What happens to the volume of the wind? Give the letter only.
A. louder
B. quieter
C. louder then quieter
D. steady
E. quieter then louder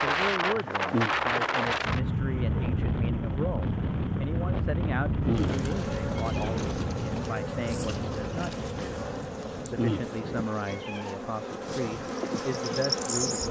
B.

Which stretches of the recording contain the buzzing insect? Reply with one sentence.
The buzzing insect can be heard from 5.2 to 13.4 s.